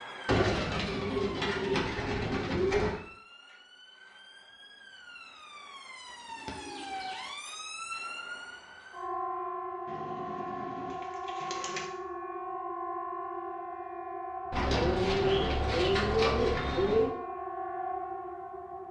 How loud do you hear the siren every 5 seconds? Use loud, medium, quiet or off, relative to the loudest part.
medium, loud, loud, loud.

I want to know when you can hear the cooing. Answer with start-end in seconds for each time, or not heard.
0.2-3.0, 6.3-7.2, 9.8-11.8, 14.5-17.1.